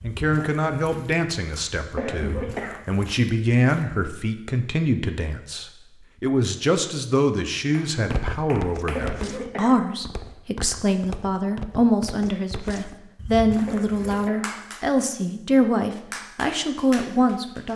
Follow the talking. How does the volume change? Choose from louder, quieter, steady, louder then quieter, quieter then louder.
steady.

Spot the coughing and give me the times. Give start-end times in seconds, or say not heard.
1.8-2.8, 8.8-9.8, 13.5-14.5.